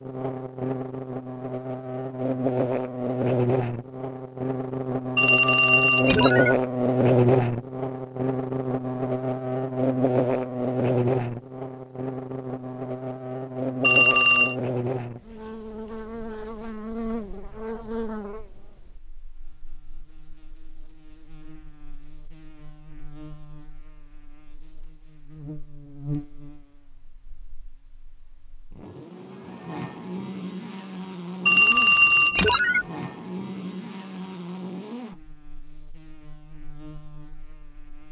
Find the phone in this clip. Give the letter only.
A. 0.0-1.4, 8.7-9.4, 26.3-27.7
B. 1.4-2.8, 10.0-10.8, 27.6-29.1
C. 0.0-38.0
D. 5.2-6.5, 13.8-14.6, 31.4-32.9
D.